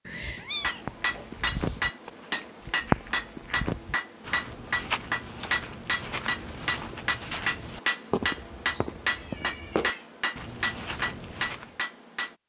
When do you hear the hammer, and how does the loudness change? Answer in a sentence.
The hammer can be heard from 0.5 to 12.3 s, at a steady volume.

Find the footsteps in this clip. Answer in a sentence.
You can hear the footsteps from 0.8 to 11.8 s.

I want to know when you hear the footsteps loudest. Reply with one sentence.
The volume of the footsteps peaks at 3 seconds.